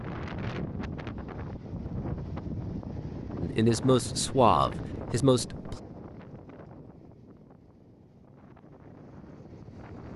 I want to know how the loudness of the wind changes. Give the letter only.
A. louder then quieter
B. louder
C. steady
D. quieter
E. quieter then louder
D.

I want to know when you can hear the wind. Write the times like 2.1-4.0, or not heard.
0.0-10.1.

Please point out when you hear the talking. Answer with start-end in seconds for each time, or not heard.
3.4-5.8.